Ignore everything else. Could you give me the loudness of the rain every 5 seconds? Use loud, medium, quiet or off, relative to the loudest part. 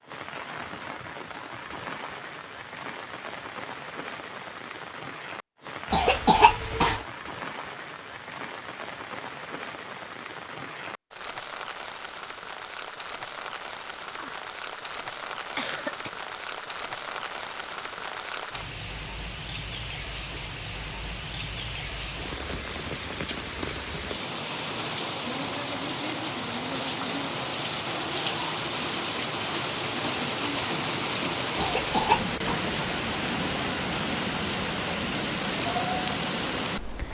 medium, medium, medium, medium, medium, loud, loud, loud.